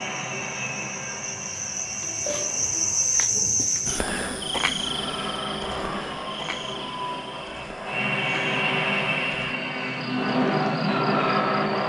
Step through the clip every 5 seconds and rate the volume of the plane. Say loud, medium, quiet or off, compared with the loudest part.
quiet, medium, loud.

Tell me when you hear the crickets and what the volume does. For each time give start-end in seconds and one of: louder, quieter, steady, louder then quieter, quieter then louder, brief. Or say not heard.
0.0-11.8 louder then quieter.